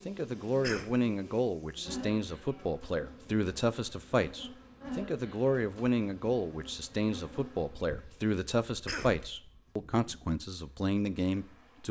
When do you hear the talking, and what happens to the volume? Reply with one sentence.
The talking can be heard from 0.1 to 11.8 s, at a steady volume.